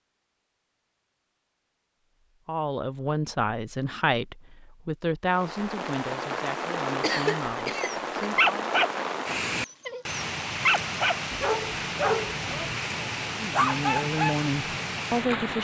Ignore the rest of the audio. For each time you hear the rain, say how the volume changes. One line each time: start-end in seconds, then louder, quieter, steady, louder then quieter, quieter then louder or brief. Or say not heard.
5.2-15.6 steady.